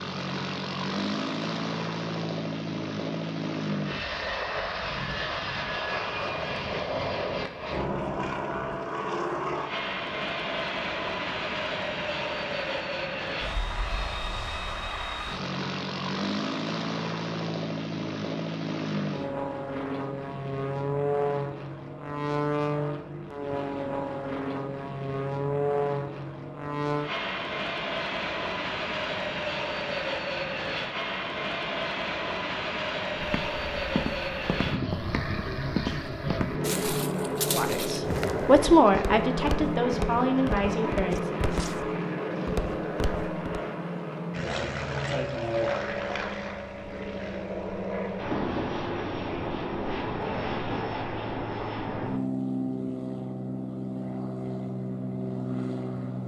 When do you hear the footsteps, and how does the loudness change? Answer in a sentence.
You can hear the footsteps from 33.1 to 43.4 s, at a steady volume.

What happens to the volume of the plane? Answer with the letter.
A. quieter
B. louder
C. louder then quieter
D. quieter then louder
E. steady
E.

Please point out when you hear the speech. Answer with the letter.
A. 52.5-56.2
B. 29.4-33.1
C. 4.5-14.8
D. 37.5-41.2
D.